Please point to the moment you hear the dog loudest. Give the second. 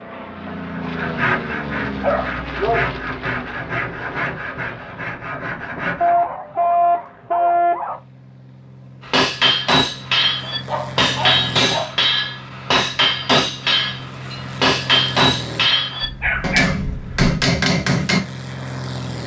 7 s.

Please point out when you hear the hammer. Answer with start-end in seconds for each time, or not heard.
9.1-18.2.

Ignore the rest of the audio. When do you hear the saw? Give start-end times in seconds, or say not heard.
0.7-6.2.